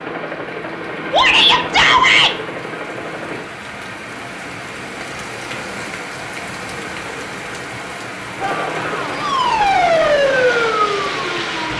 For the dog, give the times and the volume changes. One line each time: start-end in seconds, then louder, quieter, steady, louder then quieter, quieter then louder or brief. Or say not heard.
not heard.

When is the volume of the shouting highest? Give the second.
2 s.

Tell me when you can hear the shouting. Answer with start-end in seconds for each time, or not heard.
1.1-2.4, 8.3-9.2.